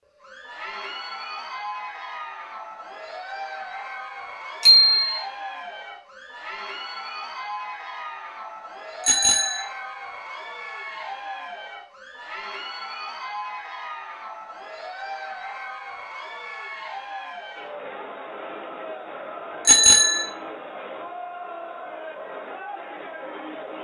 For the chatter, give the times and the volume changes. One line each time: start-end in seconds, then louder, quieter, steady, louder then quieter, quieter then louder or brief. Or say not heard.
0.1-23.7 steady.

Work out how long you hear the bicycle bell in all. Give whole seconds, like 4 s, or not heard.
2 s.